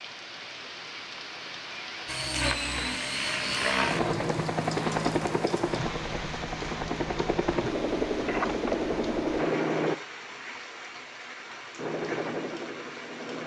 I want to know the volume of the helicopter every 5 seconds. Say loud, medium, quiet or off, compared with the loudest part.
loud, loud, medium.